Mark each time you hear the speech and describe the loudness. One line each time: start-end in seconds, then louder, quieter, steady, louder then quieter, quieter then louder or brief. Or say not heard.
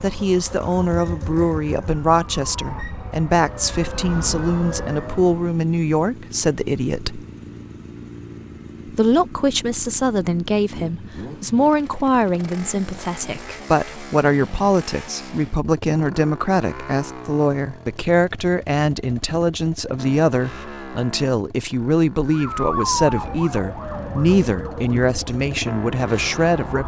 0.0-7.2 steady
8.8-26.8 steady.